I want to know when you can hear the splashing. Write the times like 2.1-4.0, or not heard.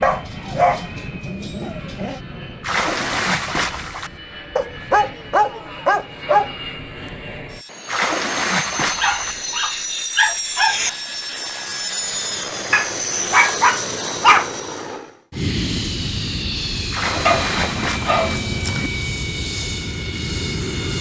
2.6-4.2, 7.8-9.4, 16.9-18.2.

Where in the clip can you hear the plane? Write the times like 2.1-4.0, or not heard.
0.0-20.9.